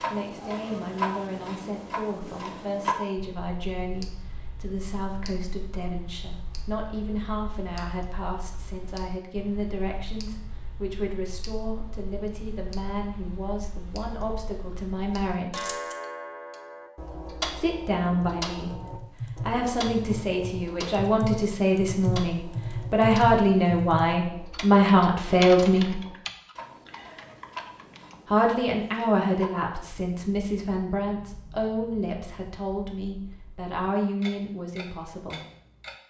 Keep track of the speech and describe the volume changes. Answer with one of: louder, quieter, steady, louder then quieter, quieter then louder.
louder then quieter.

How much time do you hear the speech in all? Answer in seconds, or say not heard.
31 s.